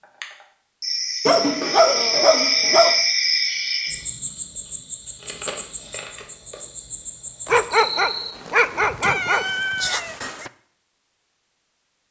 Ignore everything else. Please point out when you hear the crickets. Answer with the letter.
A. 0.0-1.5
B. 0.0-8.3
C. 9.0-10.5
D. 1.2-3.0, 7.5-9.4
B.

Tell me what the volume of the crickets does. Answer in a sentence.
The volume of the crickets goes up, then down.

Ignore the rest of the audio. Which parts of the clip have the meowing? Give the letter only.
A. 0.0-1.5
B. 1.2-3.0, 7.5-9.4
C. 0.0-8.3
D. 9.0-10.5
D.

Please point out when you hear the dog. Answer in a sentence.
You can hear the dog from 1.2 to 3.0 s and from 7.5 to 9.4 s.